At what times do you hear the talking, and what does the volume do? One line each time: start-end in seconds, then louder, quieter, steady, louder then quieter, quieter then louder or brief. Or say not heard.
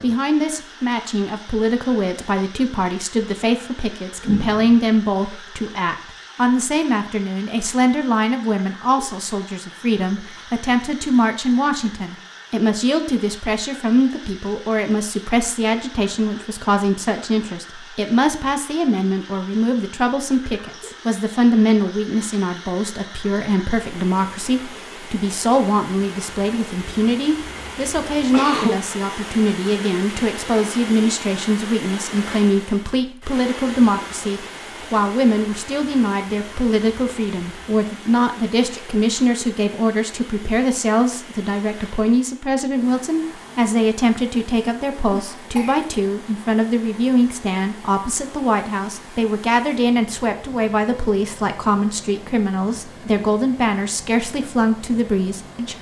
0.0-55.7 steady.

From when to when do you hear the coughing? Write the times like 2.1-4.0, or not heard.
4.2-4.8, 27.5-28.9, 45.1-45.9.